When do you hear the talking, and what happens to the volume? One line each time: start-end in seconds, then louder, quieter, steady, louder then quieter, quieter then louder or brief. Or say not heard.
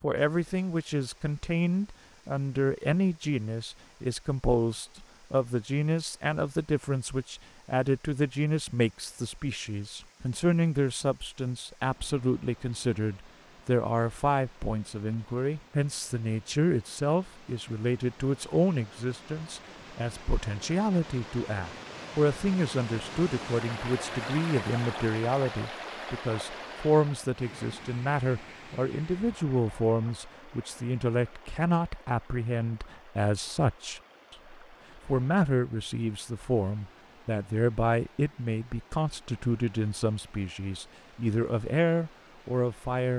0.0-43.1 steady.